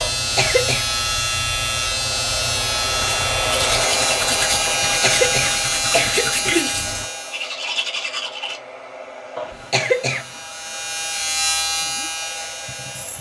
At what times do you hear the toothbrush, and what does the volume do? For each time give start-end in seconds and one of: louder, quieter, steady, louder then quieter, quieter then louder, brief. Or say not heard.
3.0-8.6 steady.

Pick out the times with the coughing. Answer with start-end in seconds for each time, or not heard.
0.0-0.8, 4.8-6.7, 9.3-10.2.